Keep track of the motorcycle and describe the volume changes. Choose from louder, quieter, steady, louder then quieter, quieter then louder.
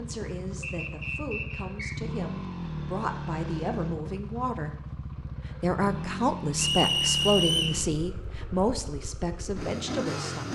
steady.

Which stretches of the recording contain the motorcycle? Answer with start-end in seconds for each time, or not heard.
0.0-10.5.